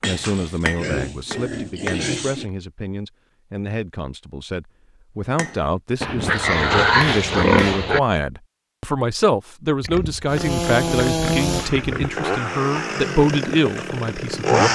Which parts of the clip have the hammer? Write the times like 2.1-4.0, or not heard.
0.0-2.1, 5.3-7.8.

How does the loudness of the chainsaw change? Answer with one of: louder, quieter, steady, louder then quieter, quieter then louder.
quieter.